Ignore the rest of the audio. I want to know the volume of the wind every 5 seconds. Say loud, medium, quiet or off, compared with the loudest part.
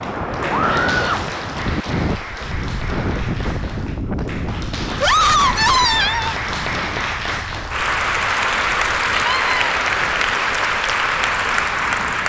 loud, medium, quiet.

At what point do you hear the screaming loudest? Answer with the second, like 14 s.
5 s.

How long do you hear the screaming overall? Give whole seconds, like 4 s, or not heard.
3 s.